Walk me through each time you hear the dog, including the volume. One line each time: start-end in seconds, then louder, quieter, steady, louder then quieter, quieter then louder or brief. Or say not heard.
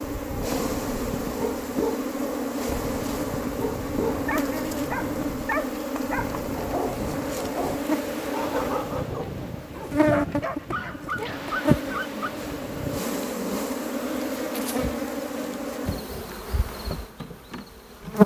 0.4-12.3 steady.